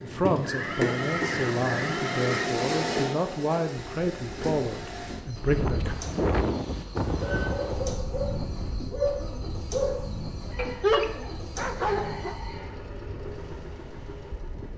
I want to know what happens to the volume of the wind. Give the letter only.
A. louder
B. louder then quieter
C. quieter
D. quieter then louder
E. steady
C.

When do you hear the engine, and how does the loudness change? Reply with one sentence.
You can hear the engine from 0.0 to 14.7 s, getting quieter.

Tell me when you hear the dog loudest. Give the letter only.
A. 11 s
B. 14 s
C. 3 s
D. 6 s
A.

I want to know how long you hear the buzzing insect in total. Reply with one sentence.
The buzzing insect can't be heard in this clip.